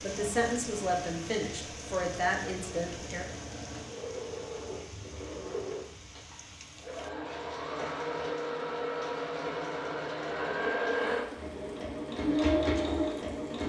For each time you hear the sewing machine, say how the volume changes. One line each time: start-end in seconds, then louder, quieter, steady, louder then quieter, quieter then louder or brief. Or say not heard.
0.0-13.6 louder.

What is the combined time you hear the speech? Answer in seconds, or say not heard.
3 s.